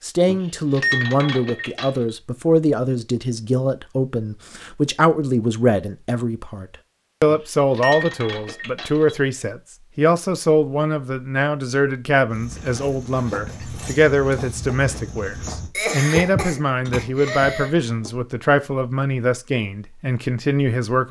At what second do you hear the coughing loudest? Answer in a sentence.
The loudest moment of the coughing is at 16 seconds.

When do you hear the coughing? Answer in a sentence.
You can hear the coughing from 15.7 to 17.7 s.